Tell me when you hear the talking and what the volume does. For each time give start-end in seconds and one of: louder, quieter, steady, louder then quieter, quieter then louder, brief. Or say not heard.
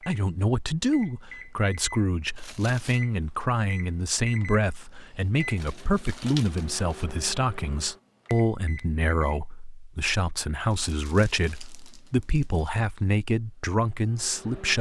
0.1-14.7 steady.